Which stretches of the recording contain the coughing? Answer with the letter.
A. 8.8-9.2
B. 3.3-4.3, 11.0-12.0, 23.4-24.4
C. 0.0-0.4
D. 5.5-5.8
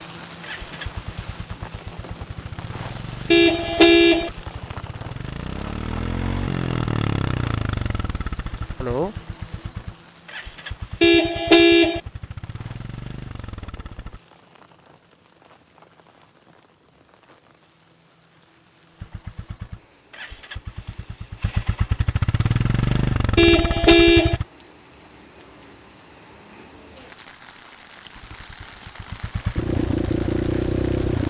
A.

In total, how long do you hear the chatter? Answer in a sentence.
You can't hear the chatter here.